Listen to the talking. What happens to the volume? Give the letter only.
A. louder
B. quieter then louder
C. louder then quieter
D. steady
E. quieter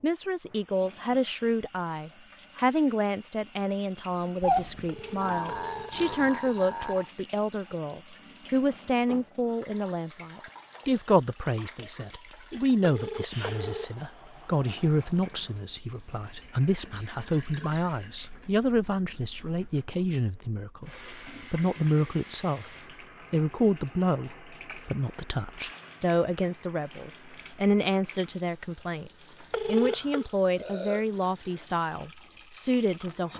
D.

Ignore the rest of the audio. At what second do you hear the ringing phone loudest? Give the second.
30 s.